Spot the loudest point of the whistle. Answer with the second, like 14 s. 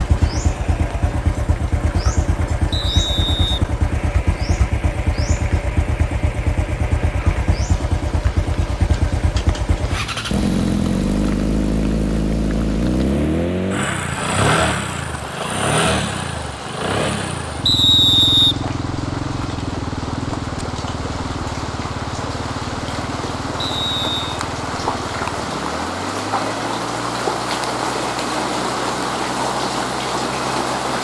18 s.